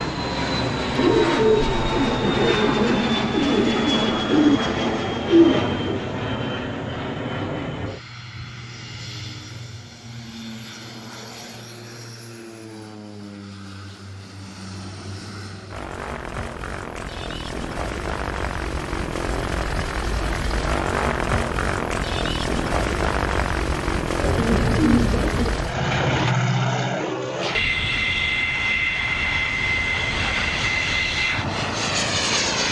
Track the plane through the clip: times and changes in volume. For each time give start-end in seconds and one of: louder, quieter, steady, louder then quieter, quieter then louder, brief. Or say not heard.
0.0-32.6 quieter then louder.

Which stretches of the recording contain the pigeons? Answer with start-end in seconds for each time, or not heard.
0.9-6.0, 24.1-26.4.